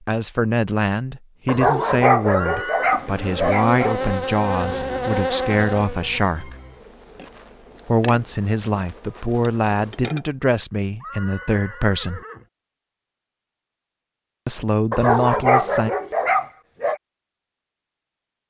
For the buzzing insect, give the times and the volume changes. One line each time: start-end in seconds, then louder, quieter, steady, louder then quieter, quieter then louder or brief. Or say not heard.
2.8-10.3 quieter.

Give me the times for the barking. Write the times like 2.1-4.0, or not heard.
1.4-4.0, 14.9-17.0.